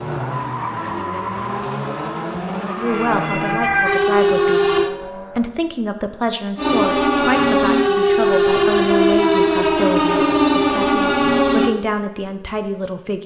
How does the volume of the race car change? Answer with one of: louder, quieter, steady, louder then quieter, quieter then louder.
quieter.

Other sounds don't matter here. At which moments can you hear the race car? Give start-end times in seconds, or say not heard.
0.0-5.5.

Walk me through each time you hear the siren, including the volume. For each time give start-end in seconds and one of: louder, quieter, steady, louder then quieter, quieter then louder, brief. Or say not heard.
2.8-4.9 brief
6.5-11.8 steady.